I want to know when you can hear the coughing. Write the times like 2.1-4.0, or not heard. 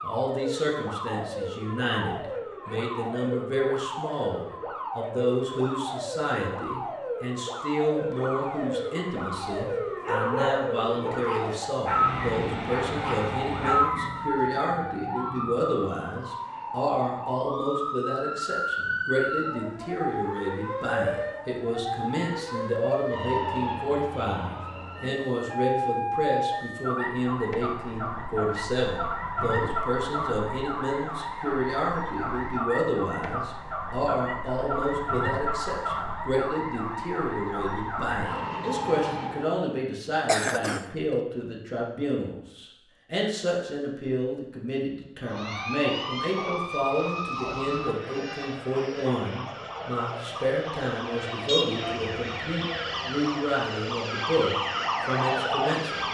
40.2-40.9.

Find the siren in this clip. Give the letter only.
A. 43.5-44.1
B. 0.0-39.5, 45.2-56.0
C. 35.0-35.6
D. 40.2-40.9
B.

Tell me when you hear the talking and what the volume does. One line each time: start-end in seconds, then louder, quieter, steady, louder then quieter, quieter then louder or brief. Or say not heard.
0.0-56.0 steady.